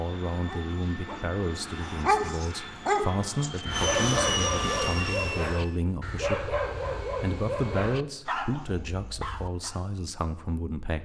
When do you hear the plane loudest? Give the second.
4 s.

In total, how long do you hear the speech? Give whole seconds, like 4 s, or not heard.
11 s.